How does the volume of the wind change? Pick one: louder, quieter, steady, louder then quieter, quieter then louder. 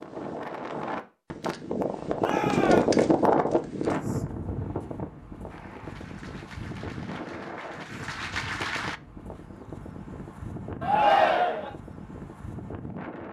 quieter.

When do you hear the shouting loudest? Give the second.
11 s.